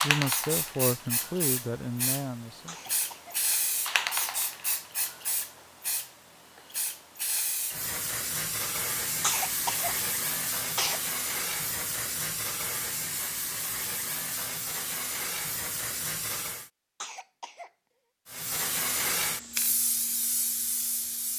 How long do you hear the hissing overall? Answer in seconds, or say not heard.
20 s.